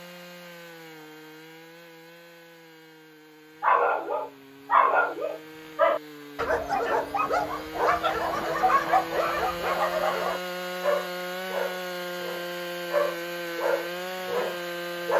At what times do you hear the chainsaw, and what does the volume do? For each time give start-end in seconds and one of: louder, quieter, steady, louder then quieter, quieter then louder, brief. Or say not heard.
0.0-15.1 louder.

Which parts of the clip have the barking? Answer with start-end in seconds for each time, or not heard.
3.6-15.1.